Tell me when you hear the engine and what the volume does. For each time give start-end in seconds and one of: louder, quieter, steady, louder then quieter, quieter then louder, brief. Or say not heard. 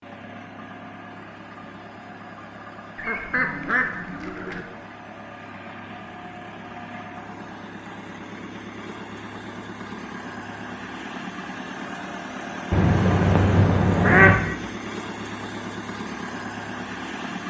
0.0-17.4 louder.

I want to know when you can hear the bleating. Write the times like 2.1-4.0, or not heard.
not heard.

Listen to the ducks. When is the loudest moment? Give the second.
14 s.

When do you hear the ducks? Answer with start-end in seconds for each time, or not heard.
3.0-4.7, 12.7-14.4.